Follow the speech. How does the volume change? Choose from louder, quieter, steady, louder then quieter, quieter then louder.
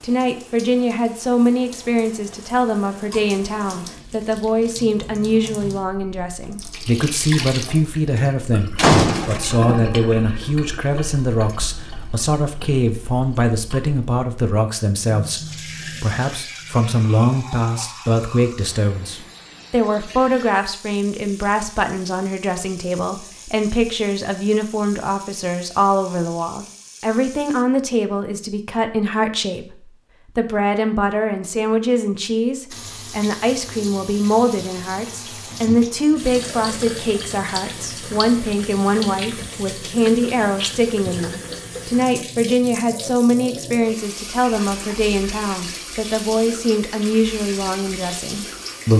steady.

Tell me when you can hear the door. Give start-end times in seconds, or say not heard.
8.8-9.4.